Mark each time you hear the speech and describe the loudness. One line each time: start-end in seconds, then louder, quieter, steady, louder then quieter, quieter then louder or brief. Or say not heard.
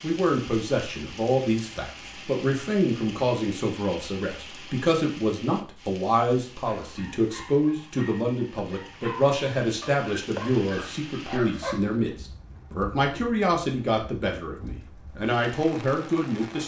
0.0-16.6 steady.